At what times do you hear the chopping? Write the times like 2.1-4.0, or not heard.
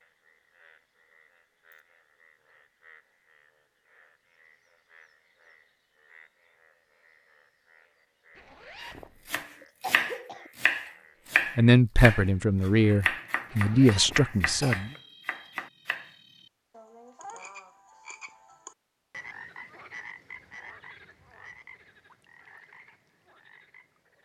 8.8-16.1.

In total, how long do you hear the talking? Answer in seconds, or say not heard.
3 s.